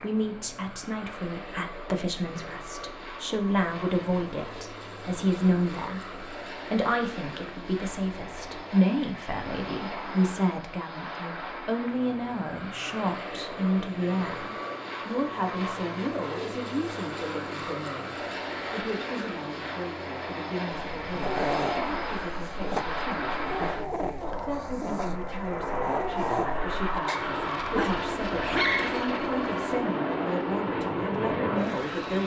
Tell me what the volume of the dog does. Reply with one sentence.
The loudness of the dog goes down, then up.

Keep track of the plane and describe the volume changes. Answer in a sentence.
The volume of the plane goes up.